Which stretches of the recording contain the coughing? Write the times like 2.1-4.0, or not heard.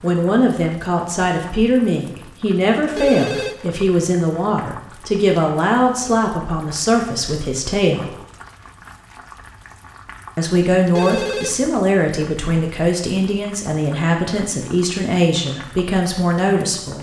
not heard.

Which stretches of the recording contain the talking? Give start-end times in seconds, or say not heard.
0.0-8.2, 10.3-16.9.